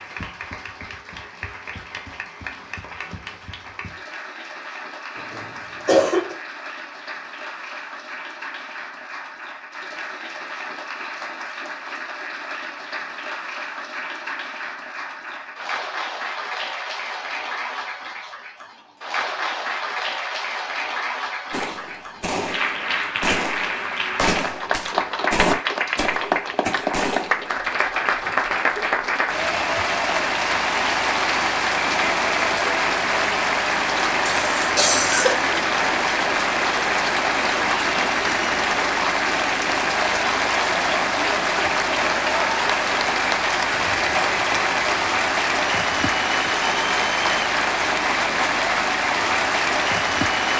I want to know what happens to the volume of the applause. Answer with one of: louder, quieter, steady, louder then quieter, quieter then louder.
louder.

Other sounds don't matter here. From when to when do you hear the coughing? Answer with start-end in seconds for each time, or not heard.
5.2-6.3, 34.2-35.4.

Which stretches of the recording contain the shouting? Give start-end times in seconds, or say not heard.
not heard.